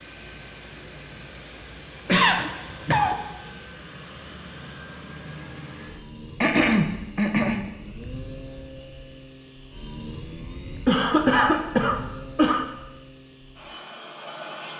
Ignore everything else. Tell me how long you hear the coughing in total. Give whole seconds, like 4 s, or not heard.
4 s.